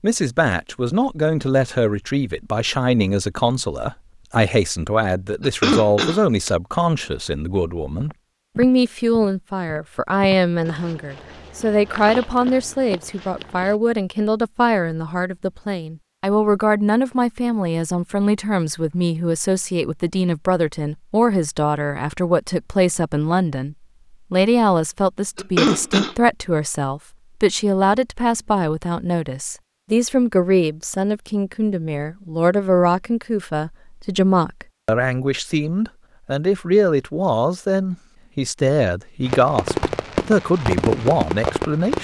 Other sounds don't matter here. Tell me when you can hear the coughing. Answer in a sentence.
You can hear the coughing from 5.4 to 6.5 s and from 25.4 to 26.1 s.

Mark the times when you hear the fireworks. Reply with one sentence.
The fireworks can be heard from 39.2 to 41.9 s.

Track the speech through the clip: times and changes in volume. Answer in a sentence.
The speech can be heard from 0.0 to 41.9 s, at a steady volume.